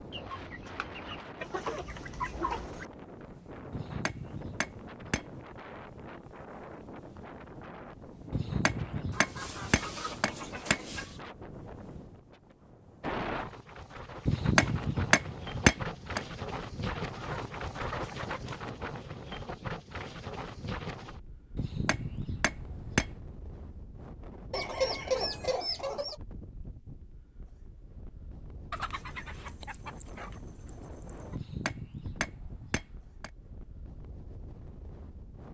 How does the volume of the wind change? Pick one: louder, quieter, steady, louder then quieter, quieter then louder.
louder then quieter.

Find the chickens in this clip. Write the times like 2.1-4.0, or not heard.
0.1-2.9, 9.1-11.2, 17.1-18.6, 24.5-26.1, 28.7-31.4.